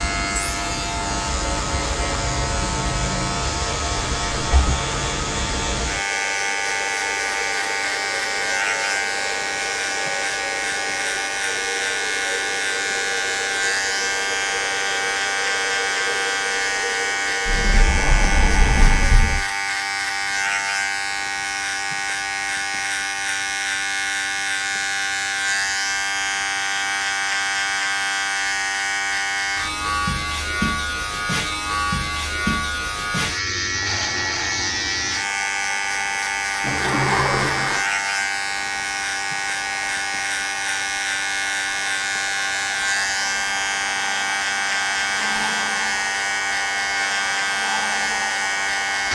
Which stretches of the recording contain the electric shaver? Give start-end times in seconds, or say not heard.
0.0-49.0.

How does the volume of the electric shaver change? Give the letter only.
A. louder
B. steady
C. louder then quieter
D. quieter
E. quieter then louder
B.